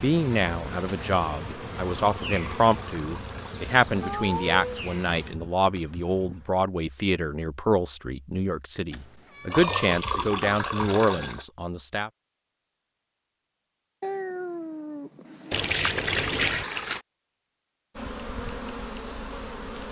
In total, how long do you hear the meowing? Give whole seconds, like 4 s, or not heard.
3 s.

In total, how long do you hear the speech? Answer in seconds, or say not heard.
12 s.